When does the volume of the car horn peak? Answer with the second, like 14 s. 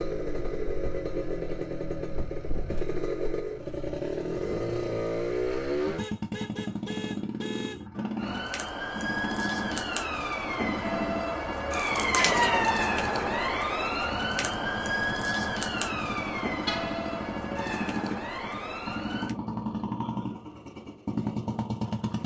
17 s.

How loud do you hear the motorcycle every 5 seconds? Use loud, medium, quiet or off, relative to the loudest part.
loud, loud, medium, loud, loud.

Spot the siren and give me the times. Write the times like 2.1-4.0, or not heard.
8.2-19.4.